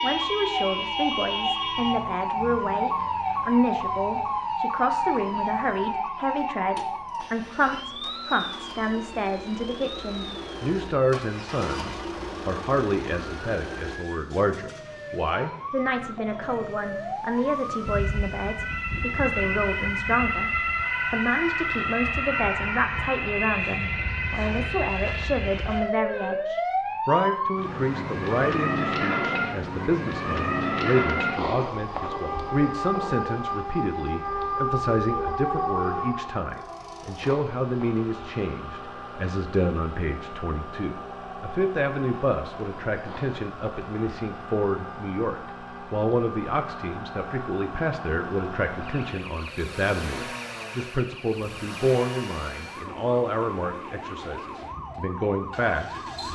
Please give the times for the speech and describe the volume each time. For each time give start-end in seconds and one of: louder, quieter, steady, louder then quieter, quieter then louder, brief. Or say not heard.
0.0-20.5 steady
21.1-56.3 steady.